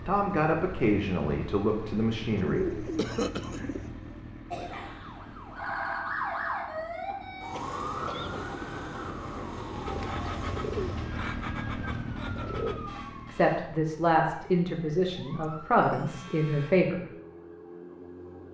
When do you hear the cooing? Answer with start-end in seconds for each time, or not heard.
2.4-3.9, 9.8-12.8.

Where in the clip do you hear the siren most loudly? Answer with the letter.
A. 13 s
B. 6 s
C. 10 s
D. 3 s
B.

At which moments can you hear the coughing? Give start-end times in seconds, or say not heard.
3.0-3.6, 7.0-8.4, 15.3-16.1.